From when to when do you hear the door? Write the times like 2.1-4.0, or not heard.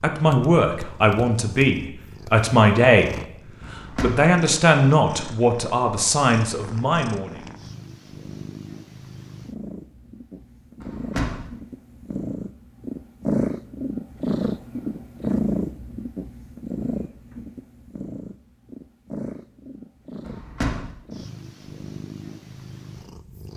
3.6-4.3, 10.8-11.5, 20.2-20.9.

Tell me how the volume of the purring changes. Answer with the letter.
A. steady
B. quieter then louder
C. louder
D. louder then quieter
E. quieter
D.